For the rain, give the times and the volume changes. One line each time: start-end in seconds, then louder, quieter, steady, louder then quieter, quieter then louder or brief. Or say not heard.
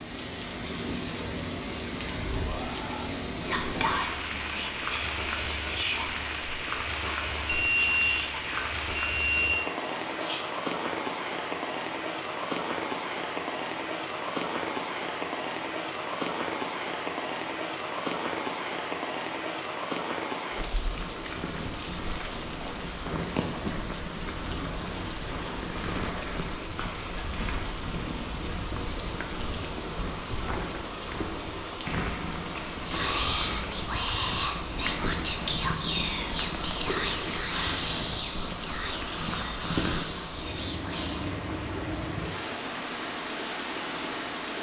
0.0-44.5 steady.